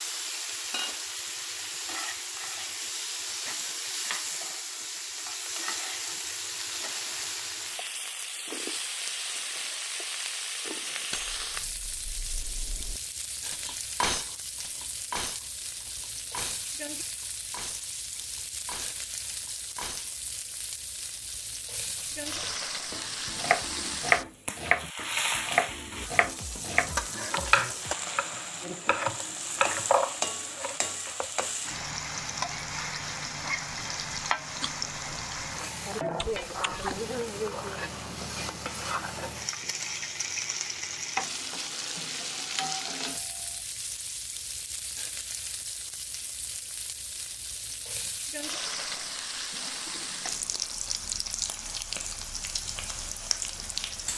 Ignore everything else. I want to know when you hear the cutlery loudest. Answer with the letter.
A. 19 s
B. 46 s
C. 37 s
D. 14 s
D.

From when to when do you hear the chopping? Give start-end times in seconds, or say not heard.
22.4-31.4.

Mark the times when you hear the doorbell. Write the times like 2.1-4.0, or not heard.
42.5-43.6.